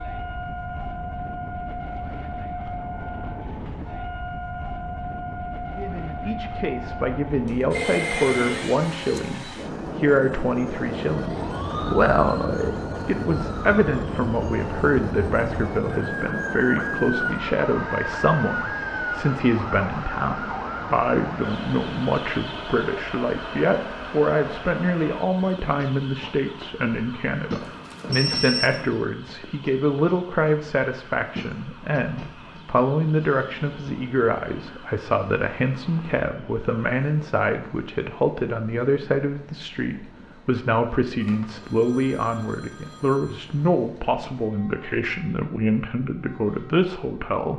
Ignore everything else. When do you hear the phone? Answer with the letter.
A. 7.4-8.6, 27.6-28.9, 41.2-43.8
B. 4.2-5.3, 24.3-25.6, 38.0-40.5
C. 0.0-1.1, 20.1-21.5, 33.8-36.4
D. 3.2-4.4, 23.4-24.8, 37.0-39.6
A.